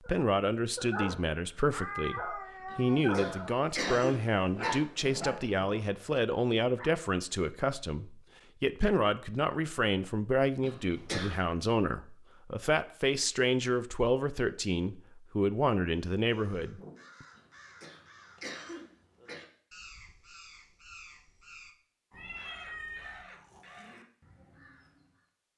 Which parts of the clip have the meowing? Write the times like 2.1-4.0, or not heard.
1.7-3.5, 22.1-23.2.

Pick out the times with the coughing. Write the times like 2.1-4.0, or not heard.
2.7-4.8, 10.6-11.4, 17.4-19.4.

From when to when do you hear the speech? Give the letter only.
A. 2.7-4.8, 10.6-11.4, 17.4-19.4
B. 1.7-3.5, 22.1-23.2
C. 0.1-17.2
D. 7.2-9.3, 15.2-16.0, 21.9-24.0
C.